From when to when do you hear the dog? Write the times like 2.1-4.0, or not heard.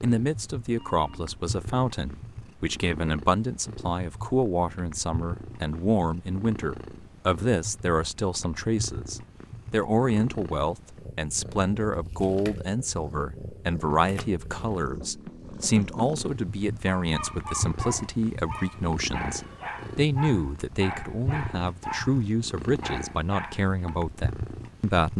16.9-23.9.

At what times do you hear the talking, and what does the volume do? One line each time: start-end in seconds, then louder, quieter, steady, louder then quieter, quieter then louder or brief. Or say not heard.
0.0-25.1 steady.